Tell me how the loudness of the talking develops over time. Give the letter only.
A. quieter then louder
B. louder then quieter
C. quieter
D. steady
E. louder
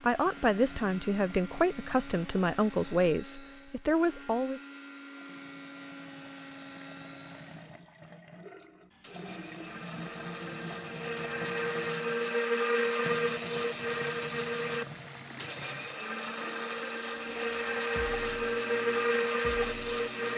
D.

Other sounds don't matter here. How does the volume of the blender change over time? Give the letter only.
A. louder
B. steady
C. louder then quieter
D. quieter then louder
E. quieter
A.